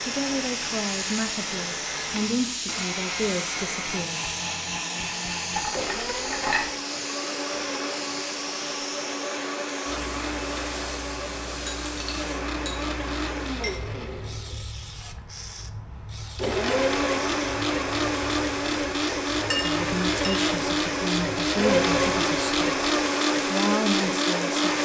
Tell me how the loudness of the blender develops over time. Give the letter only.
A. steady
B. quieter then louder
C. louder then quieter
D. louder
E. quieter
D.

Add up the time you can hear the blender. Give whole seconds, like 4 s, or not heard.
25 s.